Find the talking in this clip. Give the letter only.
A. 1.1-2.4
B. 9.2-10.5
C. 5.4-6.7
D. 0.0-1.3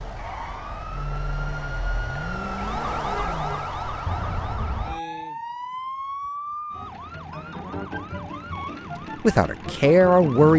B.